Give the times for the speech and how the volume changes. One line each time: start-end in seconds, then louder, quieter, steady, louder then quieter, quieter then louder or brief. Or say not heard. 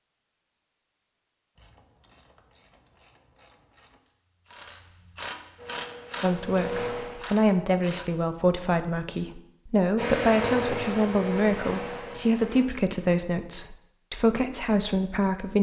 6.2-15.5 steady.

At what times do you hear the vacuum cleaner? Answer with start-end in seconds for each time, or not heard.
5.5-7.2, 9.9-12.7.